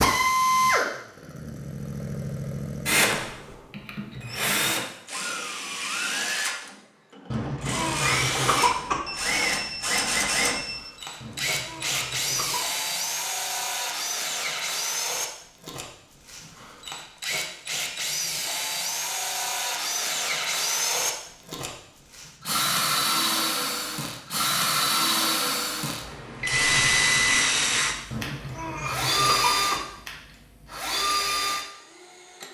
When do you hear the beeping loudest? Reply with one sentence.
The volume of the beeping peaks at 27 seconds.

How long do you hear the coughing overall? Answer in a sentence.
The coughing can be heard for 5 seconds in total.